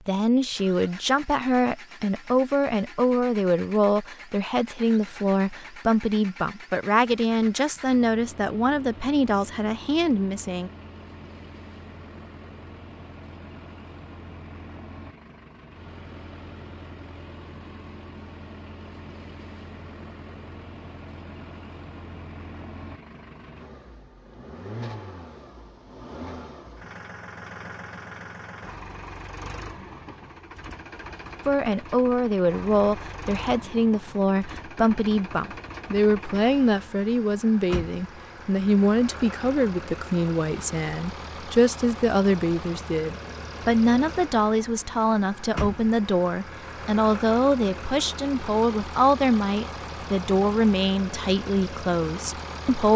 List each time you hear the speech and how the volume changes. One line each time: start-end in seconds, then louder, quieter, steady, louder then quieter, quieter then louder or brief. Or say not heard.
0.1-10.7 steady
31.4-52.9 steady.